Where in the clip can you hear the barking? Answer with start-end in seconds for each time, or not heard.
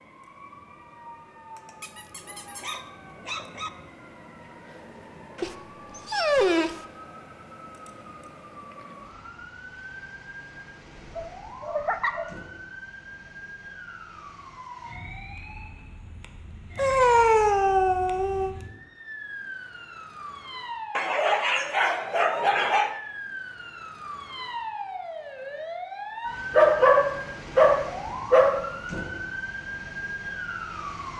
1.8-3.7, 5.4-6.8, 11.1-12.3, 16.8-18.6, 20.9-22.9, 26.6-28.6.